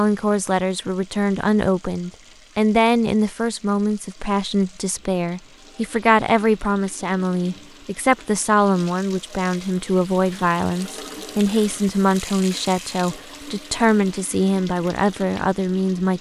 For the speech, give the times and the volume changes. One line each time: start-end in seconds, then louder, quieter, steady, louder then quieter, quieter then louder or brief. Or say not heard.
0.0-16.1 steady.